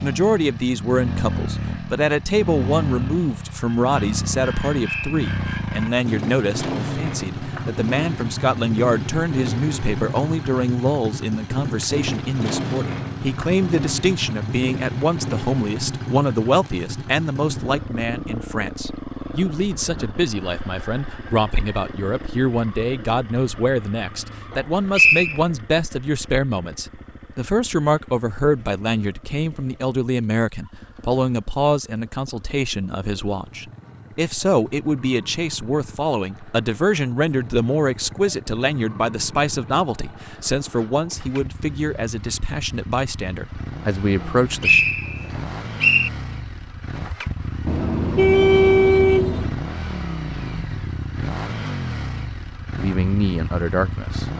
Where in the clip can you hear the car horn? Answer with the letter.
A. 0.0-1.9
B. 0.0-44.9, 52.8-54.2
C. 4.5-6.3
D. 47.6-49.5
D.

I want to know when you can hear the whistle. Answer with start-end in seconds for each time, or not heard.
4.8-5.2, 24.9-25.4, 44.2-46.1.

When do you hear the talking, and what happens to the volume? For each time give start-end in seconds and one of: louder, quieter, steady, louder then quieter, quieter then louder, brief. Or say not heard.
0.0-44.9 steady
52.8-54.2 brief.